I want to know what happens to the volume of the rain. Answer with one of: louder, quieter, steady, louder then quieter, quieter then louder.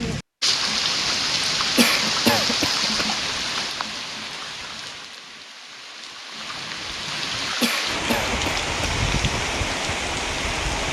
quieter then louder.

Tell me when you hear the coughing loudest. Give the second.
2 s.